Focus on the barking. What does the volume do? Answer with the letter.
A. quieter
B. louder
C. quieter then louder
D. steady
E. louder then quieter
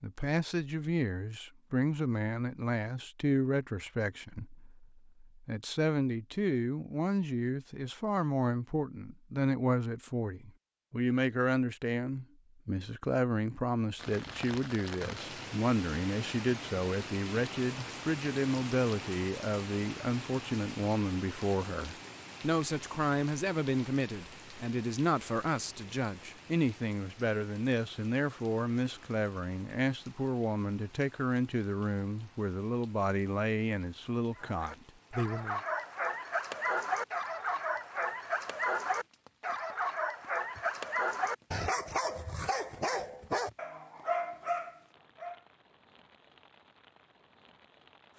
D.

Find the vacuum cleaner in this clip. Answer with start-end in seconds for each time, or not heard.
not heard.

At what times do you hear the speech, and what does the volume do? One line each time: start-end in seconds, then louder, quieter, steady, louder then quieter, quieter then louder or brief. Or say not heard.
0.0-35.6 steady.